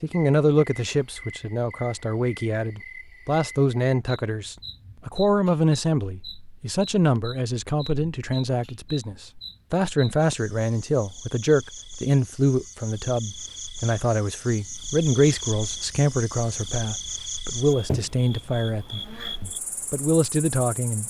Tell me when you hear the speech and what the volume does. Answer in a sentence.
You can hear the speech from 0.0 to 21.0 s, at a steady volume.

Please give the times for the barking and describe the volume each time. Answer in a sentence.
The barking can't be heard in this clip.